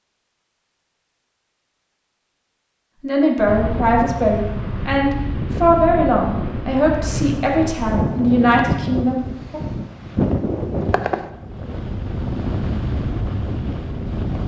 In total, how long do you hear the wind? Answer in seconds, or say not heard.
11 s.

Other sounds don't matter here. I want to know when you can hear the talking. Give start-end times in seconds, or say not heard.
3.0-9.6.